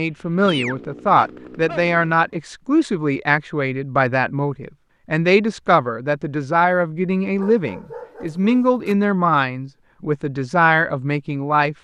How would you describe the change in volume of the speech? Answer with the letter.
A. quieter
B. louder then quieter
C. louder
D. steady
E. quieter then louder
D.